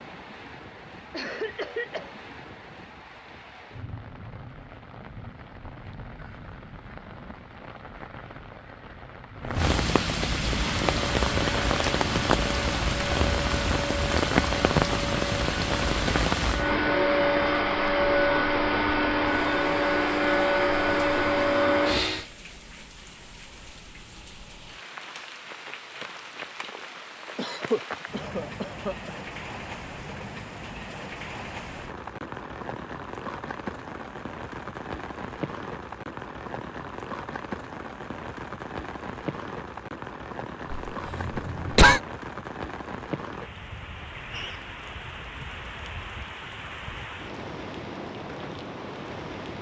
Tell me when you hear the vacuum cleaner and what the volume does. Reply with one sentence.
You can hear the vacuum cleaner from 10.4 to 22.2 s, getting louder.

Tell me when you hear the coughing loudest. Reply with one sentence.
The loudest moment of the coughing is at 42 seconds.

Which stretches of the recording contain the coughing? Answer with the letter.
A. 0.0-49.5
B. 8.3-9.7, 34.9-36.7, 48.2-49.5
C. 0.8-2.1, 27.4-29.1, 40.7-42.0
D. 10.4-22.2
C.